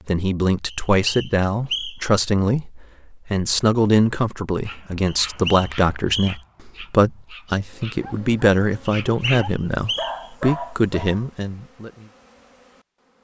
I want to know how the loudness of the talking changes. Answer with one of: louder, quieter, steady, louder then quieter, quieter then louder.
steady.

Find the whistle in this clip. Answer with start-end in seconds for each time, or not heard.
0.7-2.1, 5.0-6.4, 8.8-10.3.